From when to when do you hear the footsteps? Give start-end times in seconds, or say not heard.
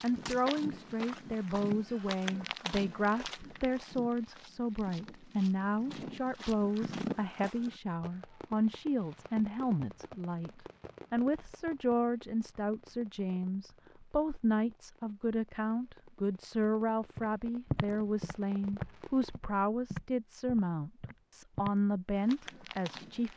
0.0-7.8, 17.1-23.3.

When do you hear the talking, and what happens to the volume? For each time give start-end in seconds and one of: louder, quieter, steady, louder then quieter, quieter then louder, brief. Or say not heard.
0.0-23.3 steady.